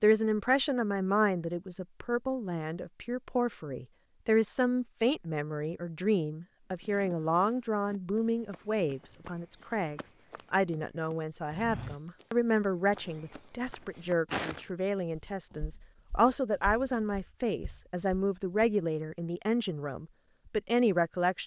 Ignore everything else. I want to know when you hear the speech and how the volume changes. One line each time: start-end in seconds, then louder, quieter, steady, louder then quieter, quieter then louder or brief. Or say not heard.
0.0-21.4 steady.